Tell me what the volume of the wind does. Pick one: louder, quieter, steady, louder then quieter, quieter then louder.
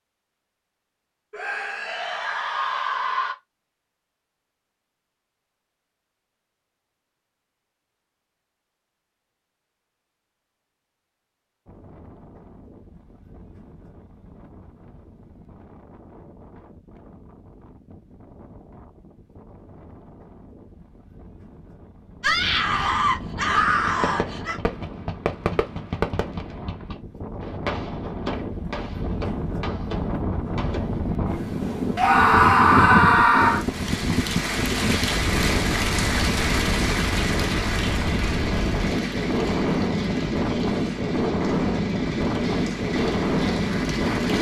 louder.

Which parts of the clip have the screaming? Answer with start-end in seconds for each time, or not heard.
1.3-3.4, 22.2-24.6, 31.9-33.6.